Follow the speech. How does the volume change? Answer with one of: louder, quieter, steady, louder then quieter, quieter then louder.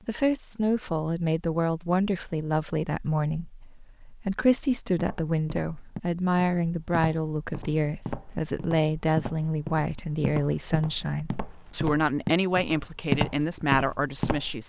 steady.